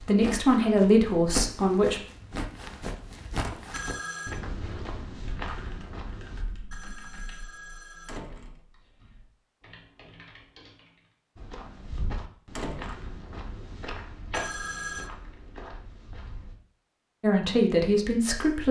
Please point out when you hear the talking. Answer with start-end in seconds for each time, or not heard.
0.0-2.0, 17.2-18.6.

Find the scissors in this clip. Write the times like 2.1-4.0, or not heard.
not heard.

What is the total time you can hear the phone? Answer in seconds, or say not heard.
3 s.